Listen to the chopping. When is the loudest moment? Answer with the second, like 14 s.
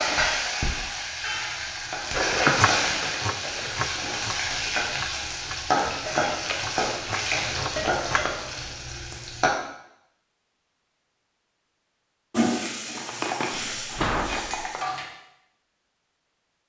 3 s.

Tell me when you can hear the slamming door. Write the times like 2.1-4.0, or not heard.
13.6-14.7.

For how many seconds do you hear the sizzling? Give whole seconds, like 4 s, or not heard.
12 s.